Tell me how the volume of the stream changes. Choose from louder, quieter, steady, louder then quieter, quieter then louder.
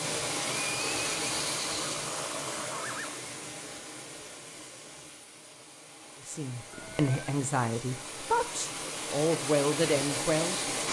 quieter then louder.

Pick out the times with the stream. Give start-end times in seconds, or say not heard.
0.0-10.8.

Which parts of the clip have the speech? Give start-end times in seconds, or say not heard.
6.2-10.6.